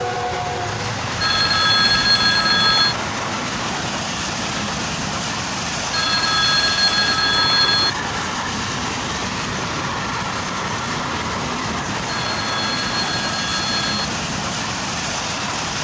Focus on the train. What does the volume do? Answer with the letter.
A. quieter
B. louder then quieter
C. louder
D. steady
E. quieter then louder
D.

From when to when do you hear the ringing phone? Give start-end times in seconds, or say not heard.
1.2-3.0, 5.9-7.9, 12.1-14.1.